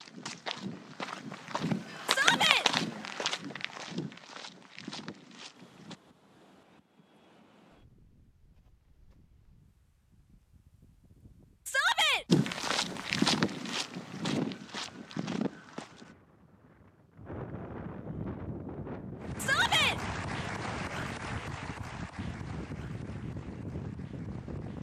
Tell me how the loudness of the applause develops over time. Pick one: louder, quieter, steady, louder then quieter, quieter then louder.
quieter.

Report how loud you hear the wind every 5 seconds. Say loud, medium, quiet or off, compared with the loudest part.
off, quiet, quiet, loud, loud.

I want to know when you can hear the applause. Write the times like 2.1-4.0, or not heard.
19.2-24.7.